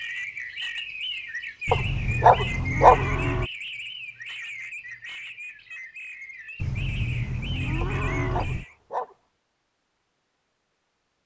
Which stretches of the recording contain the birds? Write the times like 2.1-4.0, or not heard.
0.0-8.8.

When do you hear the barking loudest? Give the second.
3 s.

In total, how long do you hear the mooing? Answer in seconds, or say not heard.
4 s.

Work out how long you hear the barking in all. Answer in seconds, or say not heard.
3 s.